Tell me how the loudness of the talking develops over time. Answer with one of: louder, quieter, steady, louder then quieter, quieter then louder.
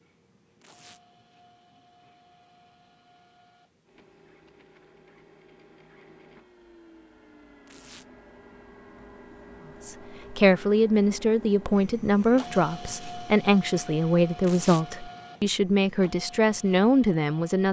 steady.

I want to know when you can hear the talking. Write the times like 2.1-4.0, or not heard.
9.8-17.6.